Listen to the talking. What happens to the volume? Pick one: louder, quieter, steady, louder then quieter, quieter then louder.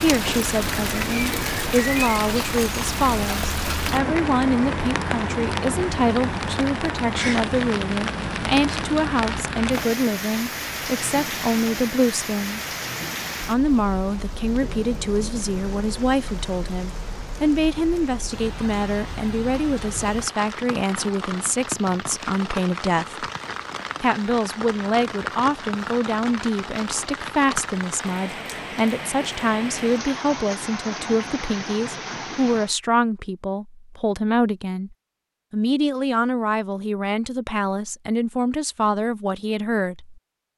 steady.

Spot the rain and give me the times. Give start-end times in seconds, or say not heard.
0.0-32.8.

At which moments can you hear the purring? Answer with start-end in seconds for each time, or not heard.
not heard.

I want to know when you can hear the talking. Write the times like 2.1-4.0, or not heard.
0.0-12.6, 13.4-23.2, 24.0-40.1.